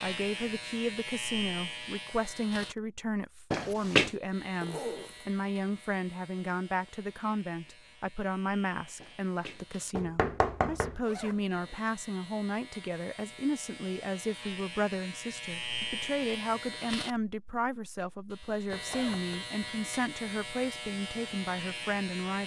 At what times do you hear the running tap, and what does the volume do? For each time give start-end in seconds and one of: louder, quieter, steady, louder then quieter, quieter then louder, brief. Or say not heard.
not heard.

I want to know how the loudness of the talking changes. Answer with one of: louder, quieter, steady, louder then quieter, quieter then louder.
steady.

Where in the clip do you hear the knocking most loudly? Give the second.
4 s.